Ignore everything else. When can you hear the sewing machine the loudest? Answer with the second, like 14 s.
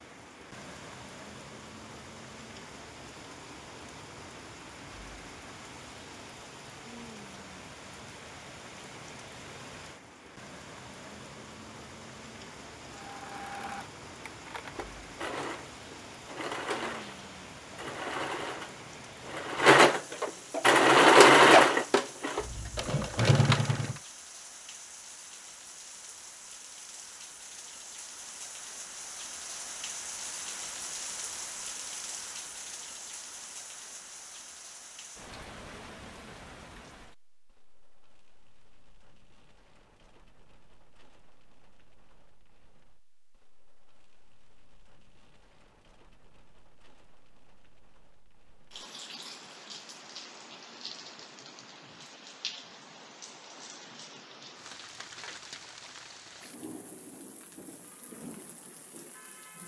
21 s.